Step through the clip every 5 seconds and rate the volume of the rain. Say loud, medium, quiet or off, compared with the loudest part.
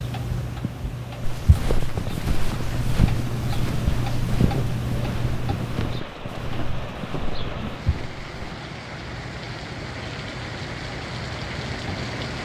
medium, loud, loud.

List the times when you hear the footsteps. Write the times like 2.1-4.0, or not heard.
1.2-8.6.